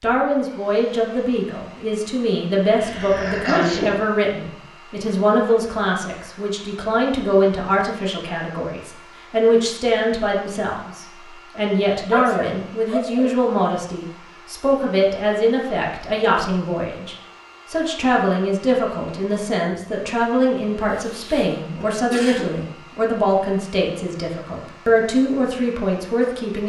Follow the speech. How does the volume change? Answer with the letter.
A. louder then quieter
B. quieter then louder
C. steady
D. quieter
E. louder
C.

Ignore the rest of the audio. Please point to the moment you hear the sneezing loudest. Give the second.
4 s.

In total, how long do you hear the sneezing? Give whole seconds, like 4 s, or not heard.
4 s.